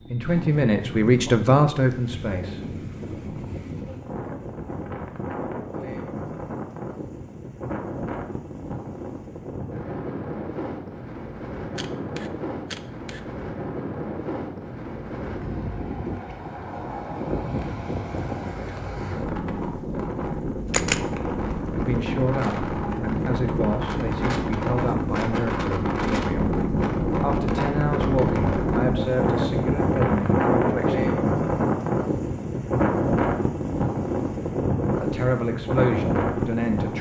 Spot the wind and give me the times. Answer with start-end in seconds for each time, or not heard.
0.0-36.9.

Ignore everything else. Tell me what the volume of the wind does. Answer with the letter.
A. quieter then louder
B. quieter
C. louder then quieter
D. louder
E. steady
D.